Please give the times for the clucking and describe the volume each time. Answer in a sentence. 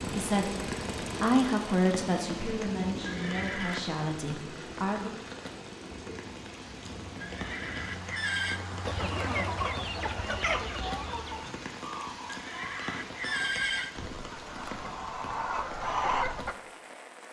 You can hear the clucking from 8.8 to 16.6 s, getting quieter then louder.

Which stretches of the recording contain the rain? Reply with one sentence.
You can hear the rain from 0.0 to 17.2 s.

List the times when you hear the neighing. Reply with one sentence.
The neighing can be heard from 3.0 to 3.8 s, from 7.2 to 8.6 s and from 12.2 to 13.9 s.